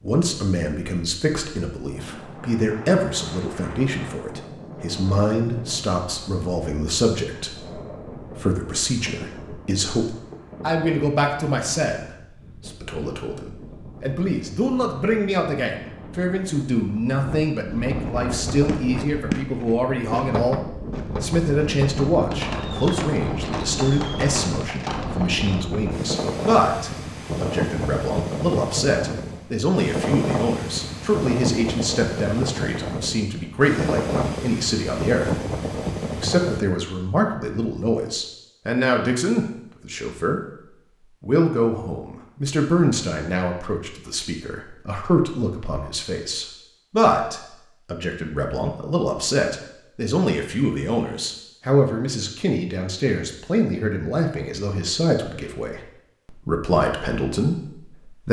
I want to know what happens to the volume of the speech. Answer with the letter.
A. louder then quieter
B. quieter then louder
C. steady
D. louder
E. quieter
C.